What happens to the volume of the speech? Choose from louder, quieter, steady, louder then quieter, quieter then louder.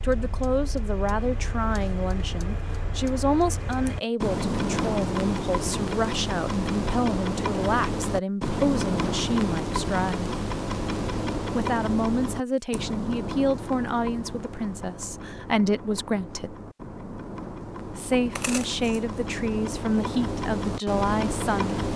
steady.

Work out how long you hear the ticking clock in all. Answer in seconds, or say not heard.
22 s.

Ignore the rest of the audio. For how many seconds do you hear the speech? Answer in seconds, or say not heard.
19 s.